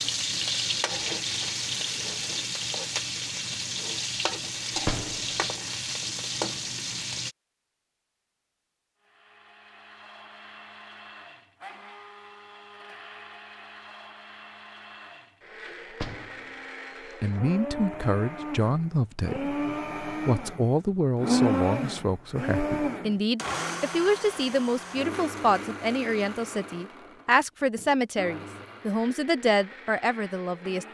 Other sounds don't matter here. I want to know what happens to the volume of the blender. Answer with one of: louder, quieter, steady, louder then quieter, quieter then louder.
louder then quieter.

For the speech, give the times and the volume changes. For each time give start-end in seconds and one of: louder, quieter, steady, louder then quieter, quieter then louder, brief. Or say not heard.
17.2-30.8 steady.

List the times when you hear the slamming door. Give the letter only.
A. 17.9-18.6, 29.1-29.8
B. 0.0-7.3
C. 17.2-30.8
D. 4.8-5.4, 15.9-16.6
D.